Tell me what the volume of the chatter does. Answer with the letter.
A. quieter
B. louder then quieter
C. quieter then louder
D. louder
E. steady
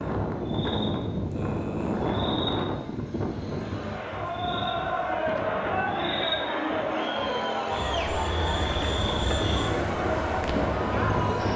E.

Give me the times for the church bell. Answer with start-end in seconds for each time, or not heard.
not heard.